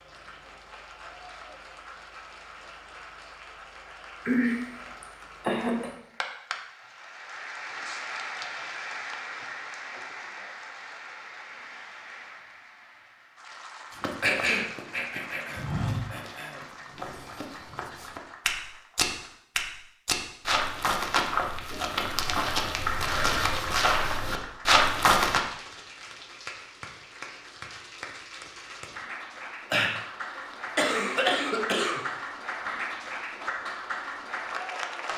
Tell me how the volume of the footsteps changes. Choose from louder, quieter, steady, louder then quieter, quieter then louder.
louder.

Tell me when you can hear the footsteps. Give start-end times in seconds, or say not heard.
13.9-25.4.